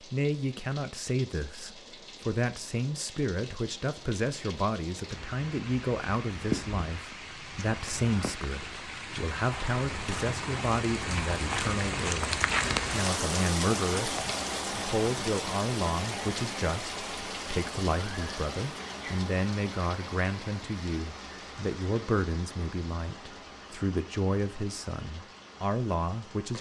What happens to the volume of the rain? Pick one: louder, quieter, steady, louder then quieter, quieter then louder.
louder then quieter.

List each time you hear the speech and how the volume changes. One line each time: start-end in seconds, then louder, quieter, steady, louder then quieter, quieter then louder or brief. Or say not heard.
0.0-26.5 steady.